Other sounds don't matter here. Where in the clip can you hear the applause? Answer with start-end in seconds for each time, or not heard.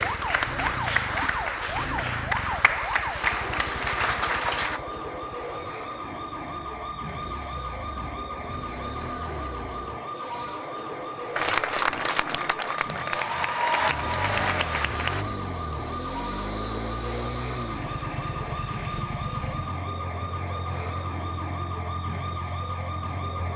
0.0-4.8, 11.3-15.2.